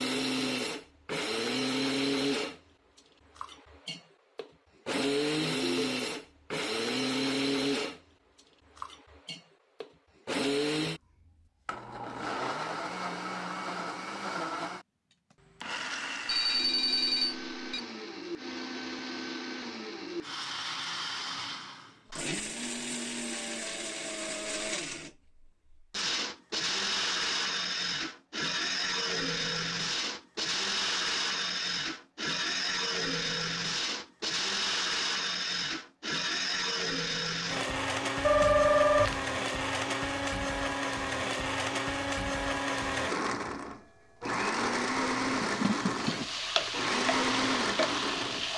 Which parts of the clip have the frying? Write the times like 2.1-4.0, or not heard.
45.2-48.5.